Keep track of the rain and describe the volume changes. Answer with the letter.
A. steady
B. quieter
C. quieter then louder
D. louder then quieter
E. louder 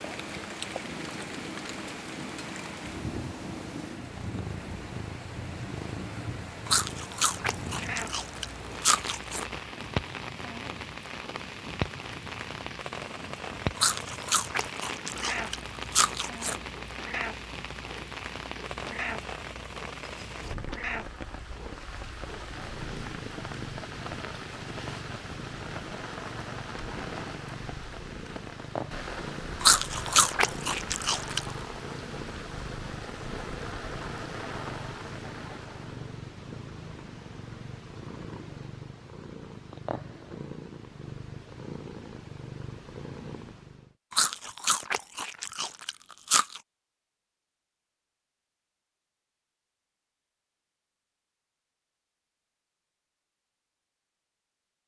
A.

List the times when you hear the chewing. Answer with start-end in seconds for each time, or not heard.
6.7-9.4, 13.8-16.6, 29.6-31.4, 44.1-46.6.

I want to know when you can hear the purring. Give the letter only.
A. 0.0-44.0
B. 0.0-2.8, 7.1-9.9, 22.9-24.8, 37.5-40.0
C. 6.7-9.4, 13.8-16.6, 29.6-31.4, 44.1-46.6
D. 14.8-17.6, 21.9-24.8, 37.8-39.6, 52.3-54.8
A.